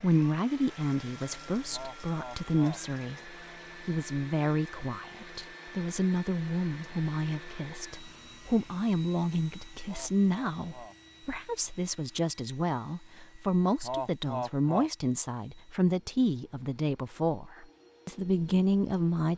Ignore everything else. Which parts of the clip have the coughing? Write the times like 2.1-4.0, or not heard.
1.7-2.8, 9.8-10.9, 13.8-14.9.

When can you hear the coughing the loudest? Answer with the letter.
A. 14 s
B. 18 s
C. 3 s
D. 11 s
A.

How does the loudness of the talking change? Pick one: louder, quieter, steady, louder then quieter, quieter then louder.
steady.